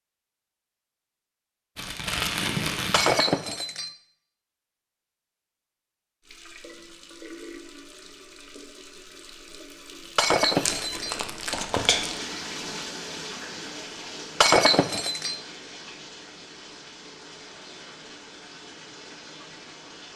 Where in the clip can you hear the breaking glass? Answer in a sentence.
The breaking glass can be heard from 2.9 to 3.9 s, from 10.2 to 11.2 s and from 14.4 to 15.3 s.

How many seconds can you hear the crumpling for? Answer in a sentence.
You can hear the crumpling for 3 seconds altogether.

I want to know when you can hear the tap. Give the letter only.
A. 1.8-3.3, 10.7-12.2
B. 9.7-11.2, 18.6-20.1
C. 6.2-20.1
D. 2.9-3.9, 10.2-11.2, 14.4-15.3
C.